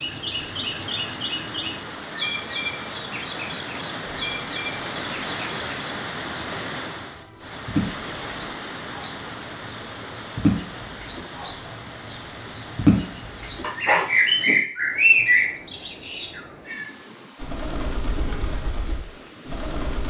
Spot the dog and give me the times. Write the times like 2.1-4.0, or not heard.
13.6-14.7.